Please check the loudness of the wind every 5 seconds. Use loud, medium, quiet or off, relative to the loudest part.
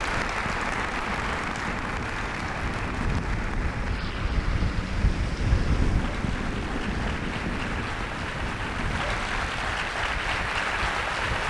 loud, loud, medium.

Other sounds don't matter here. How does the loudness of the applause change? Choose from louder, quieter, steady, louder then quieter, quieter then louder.
quieter then louder.